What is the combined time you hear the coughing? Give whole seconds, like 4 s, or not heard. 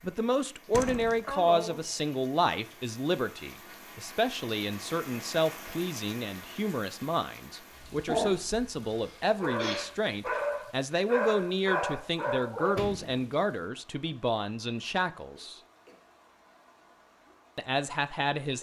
3 s.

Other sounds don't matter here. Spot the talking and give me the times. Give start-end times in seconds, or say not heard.
0.0-15.6, 17.6-18.5.